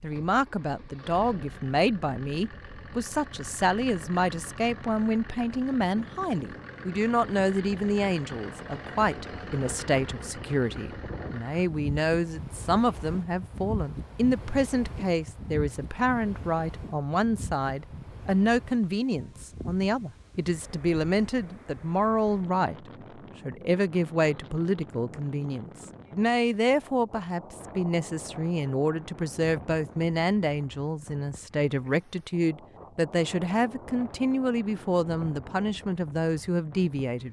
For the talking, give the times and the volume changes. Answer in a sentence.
The talking can be heard from 0.0 to 37.2 s, at a steady volume.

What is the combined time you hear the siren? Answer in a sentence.
The siren can't be heard in this clip.